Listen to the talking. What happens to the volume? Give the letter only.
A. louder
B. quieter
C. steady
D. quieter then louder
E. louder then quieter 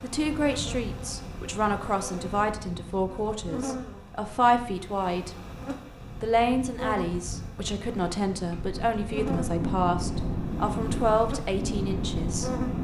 C.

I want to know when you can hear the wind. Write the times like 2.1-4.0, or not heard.
0.1-12.7.